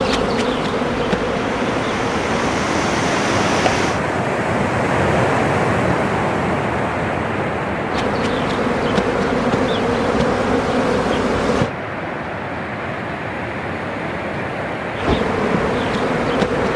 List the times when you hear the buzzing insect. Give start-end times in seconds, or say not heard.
0.0-2.6, 7.8-11.7, 14.9-16.7.